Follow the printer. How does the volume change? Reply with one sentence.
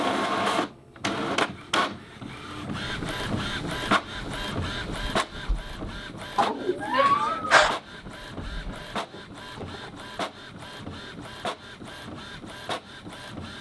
The loudness of the printer goes down.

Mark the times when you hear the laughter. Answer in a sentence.
You can hear the laughter from 6.3 to 7.8 s.